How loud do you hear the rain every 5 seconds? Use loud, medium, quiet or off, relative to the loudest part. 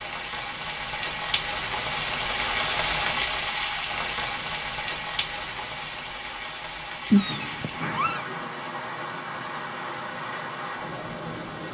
loud, medium, medium.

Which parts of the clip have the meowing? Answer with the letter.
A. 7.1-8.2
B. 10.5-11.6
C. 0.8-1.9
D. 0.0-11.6
A.